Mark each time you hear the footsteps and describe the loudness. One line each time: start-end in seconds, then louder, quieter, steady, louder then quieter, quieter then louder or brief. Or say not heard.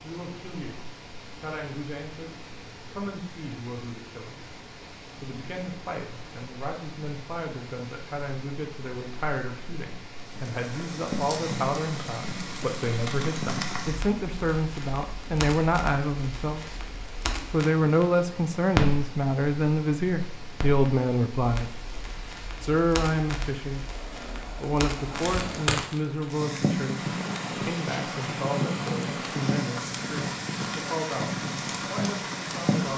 not heard.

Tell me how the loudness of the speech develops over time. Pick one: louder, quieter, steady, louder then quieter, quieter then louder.
louder then quieter.